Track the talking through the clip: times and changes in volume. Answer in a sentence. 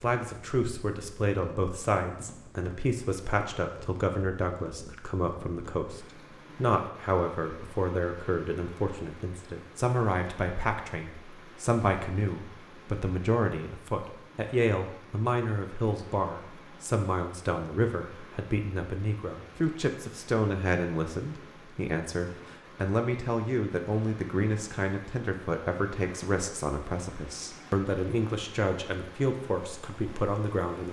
You can hear the talking from 0.0 to 30.8 s, at a steady volume.